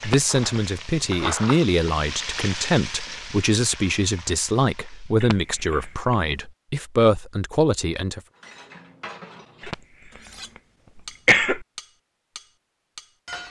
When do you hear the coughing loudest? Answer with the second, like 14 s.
11 s.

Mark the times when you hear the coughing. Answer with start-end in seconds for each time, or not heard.
0.0-0.6, 5.2-6.2, 9.6-11.7.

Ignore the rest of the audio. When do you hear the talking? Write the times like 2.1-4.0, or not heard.
0.0-8.2.